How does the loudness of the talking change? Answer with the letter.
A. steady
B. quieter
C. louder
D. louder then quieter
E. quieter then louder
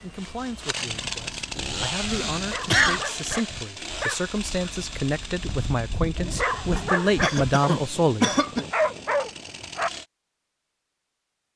C.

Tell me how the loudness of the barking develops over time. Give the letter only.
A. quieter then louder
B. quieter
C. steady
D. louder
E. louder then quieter
D.